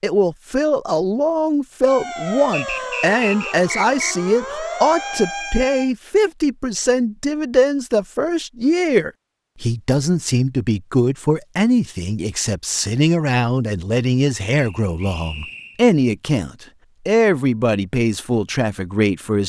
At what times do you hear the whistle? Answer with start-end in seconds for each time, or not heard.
2.5-4.2, 14.6-15.8.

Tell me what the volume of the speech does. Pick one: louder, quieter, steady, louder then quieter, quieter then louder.
steady.